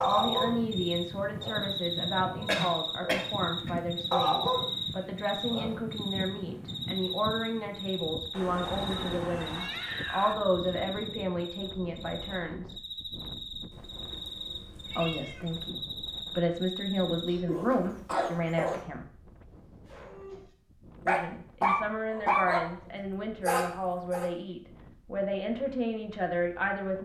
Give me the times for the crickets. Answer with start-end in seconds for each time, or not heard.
0.0-17.4.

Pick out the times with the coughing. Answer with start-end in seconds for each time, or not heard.
2.5-3.7, 17.4-18.8.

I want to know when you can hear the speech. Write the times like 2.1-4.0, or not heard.
0.0-12.8, 14.9-19.1, 21.1-27.0.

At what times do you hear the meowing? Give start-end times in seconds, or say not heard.
8.3-10.3, 13.7-15.7.